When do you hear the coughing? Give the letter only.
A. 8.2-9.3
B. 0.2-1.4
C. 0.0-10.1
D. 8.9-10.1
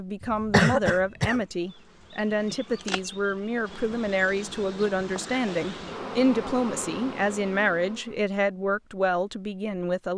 B.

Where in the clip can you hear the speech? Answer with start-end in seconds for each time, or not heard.
0.0-10.1.